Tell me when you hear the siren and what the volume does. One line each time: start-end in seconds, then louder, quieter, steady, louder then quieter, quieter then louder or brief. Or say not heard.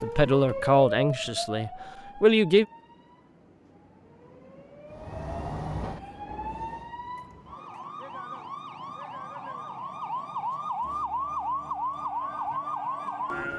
0.0-13.5 quieter then louder.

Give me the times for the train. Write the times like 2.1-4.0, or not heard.
4.8-7.0.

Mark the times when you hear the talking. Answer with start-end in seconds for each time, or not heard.
0.0-2.6.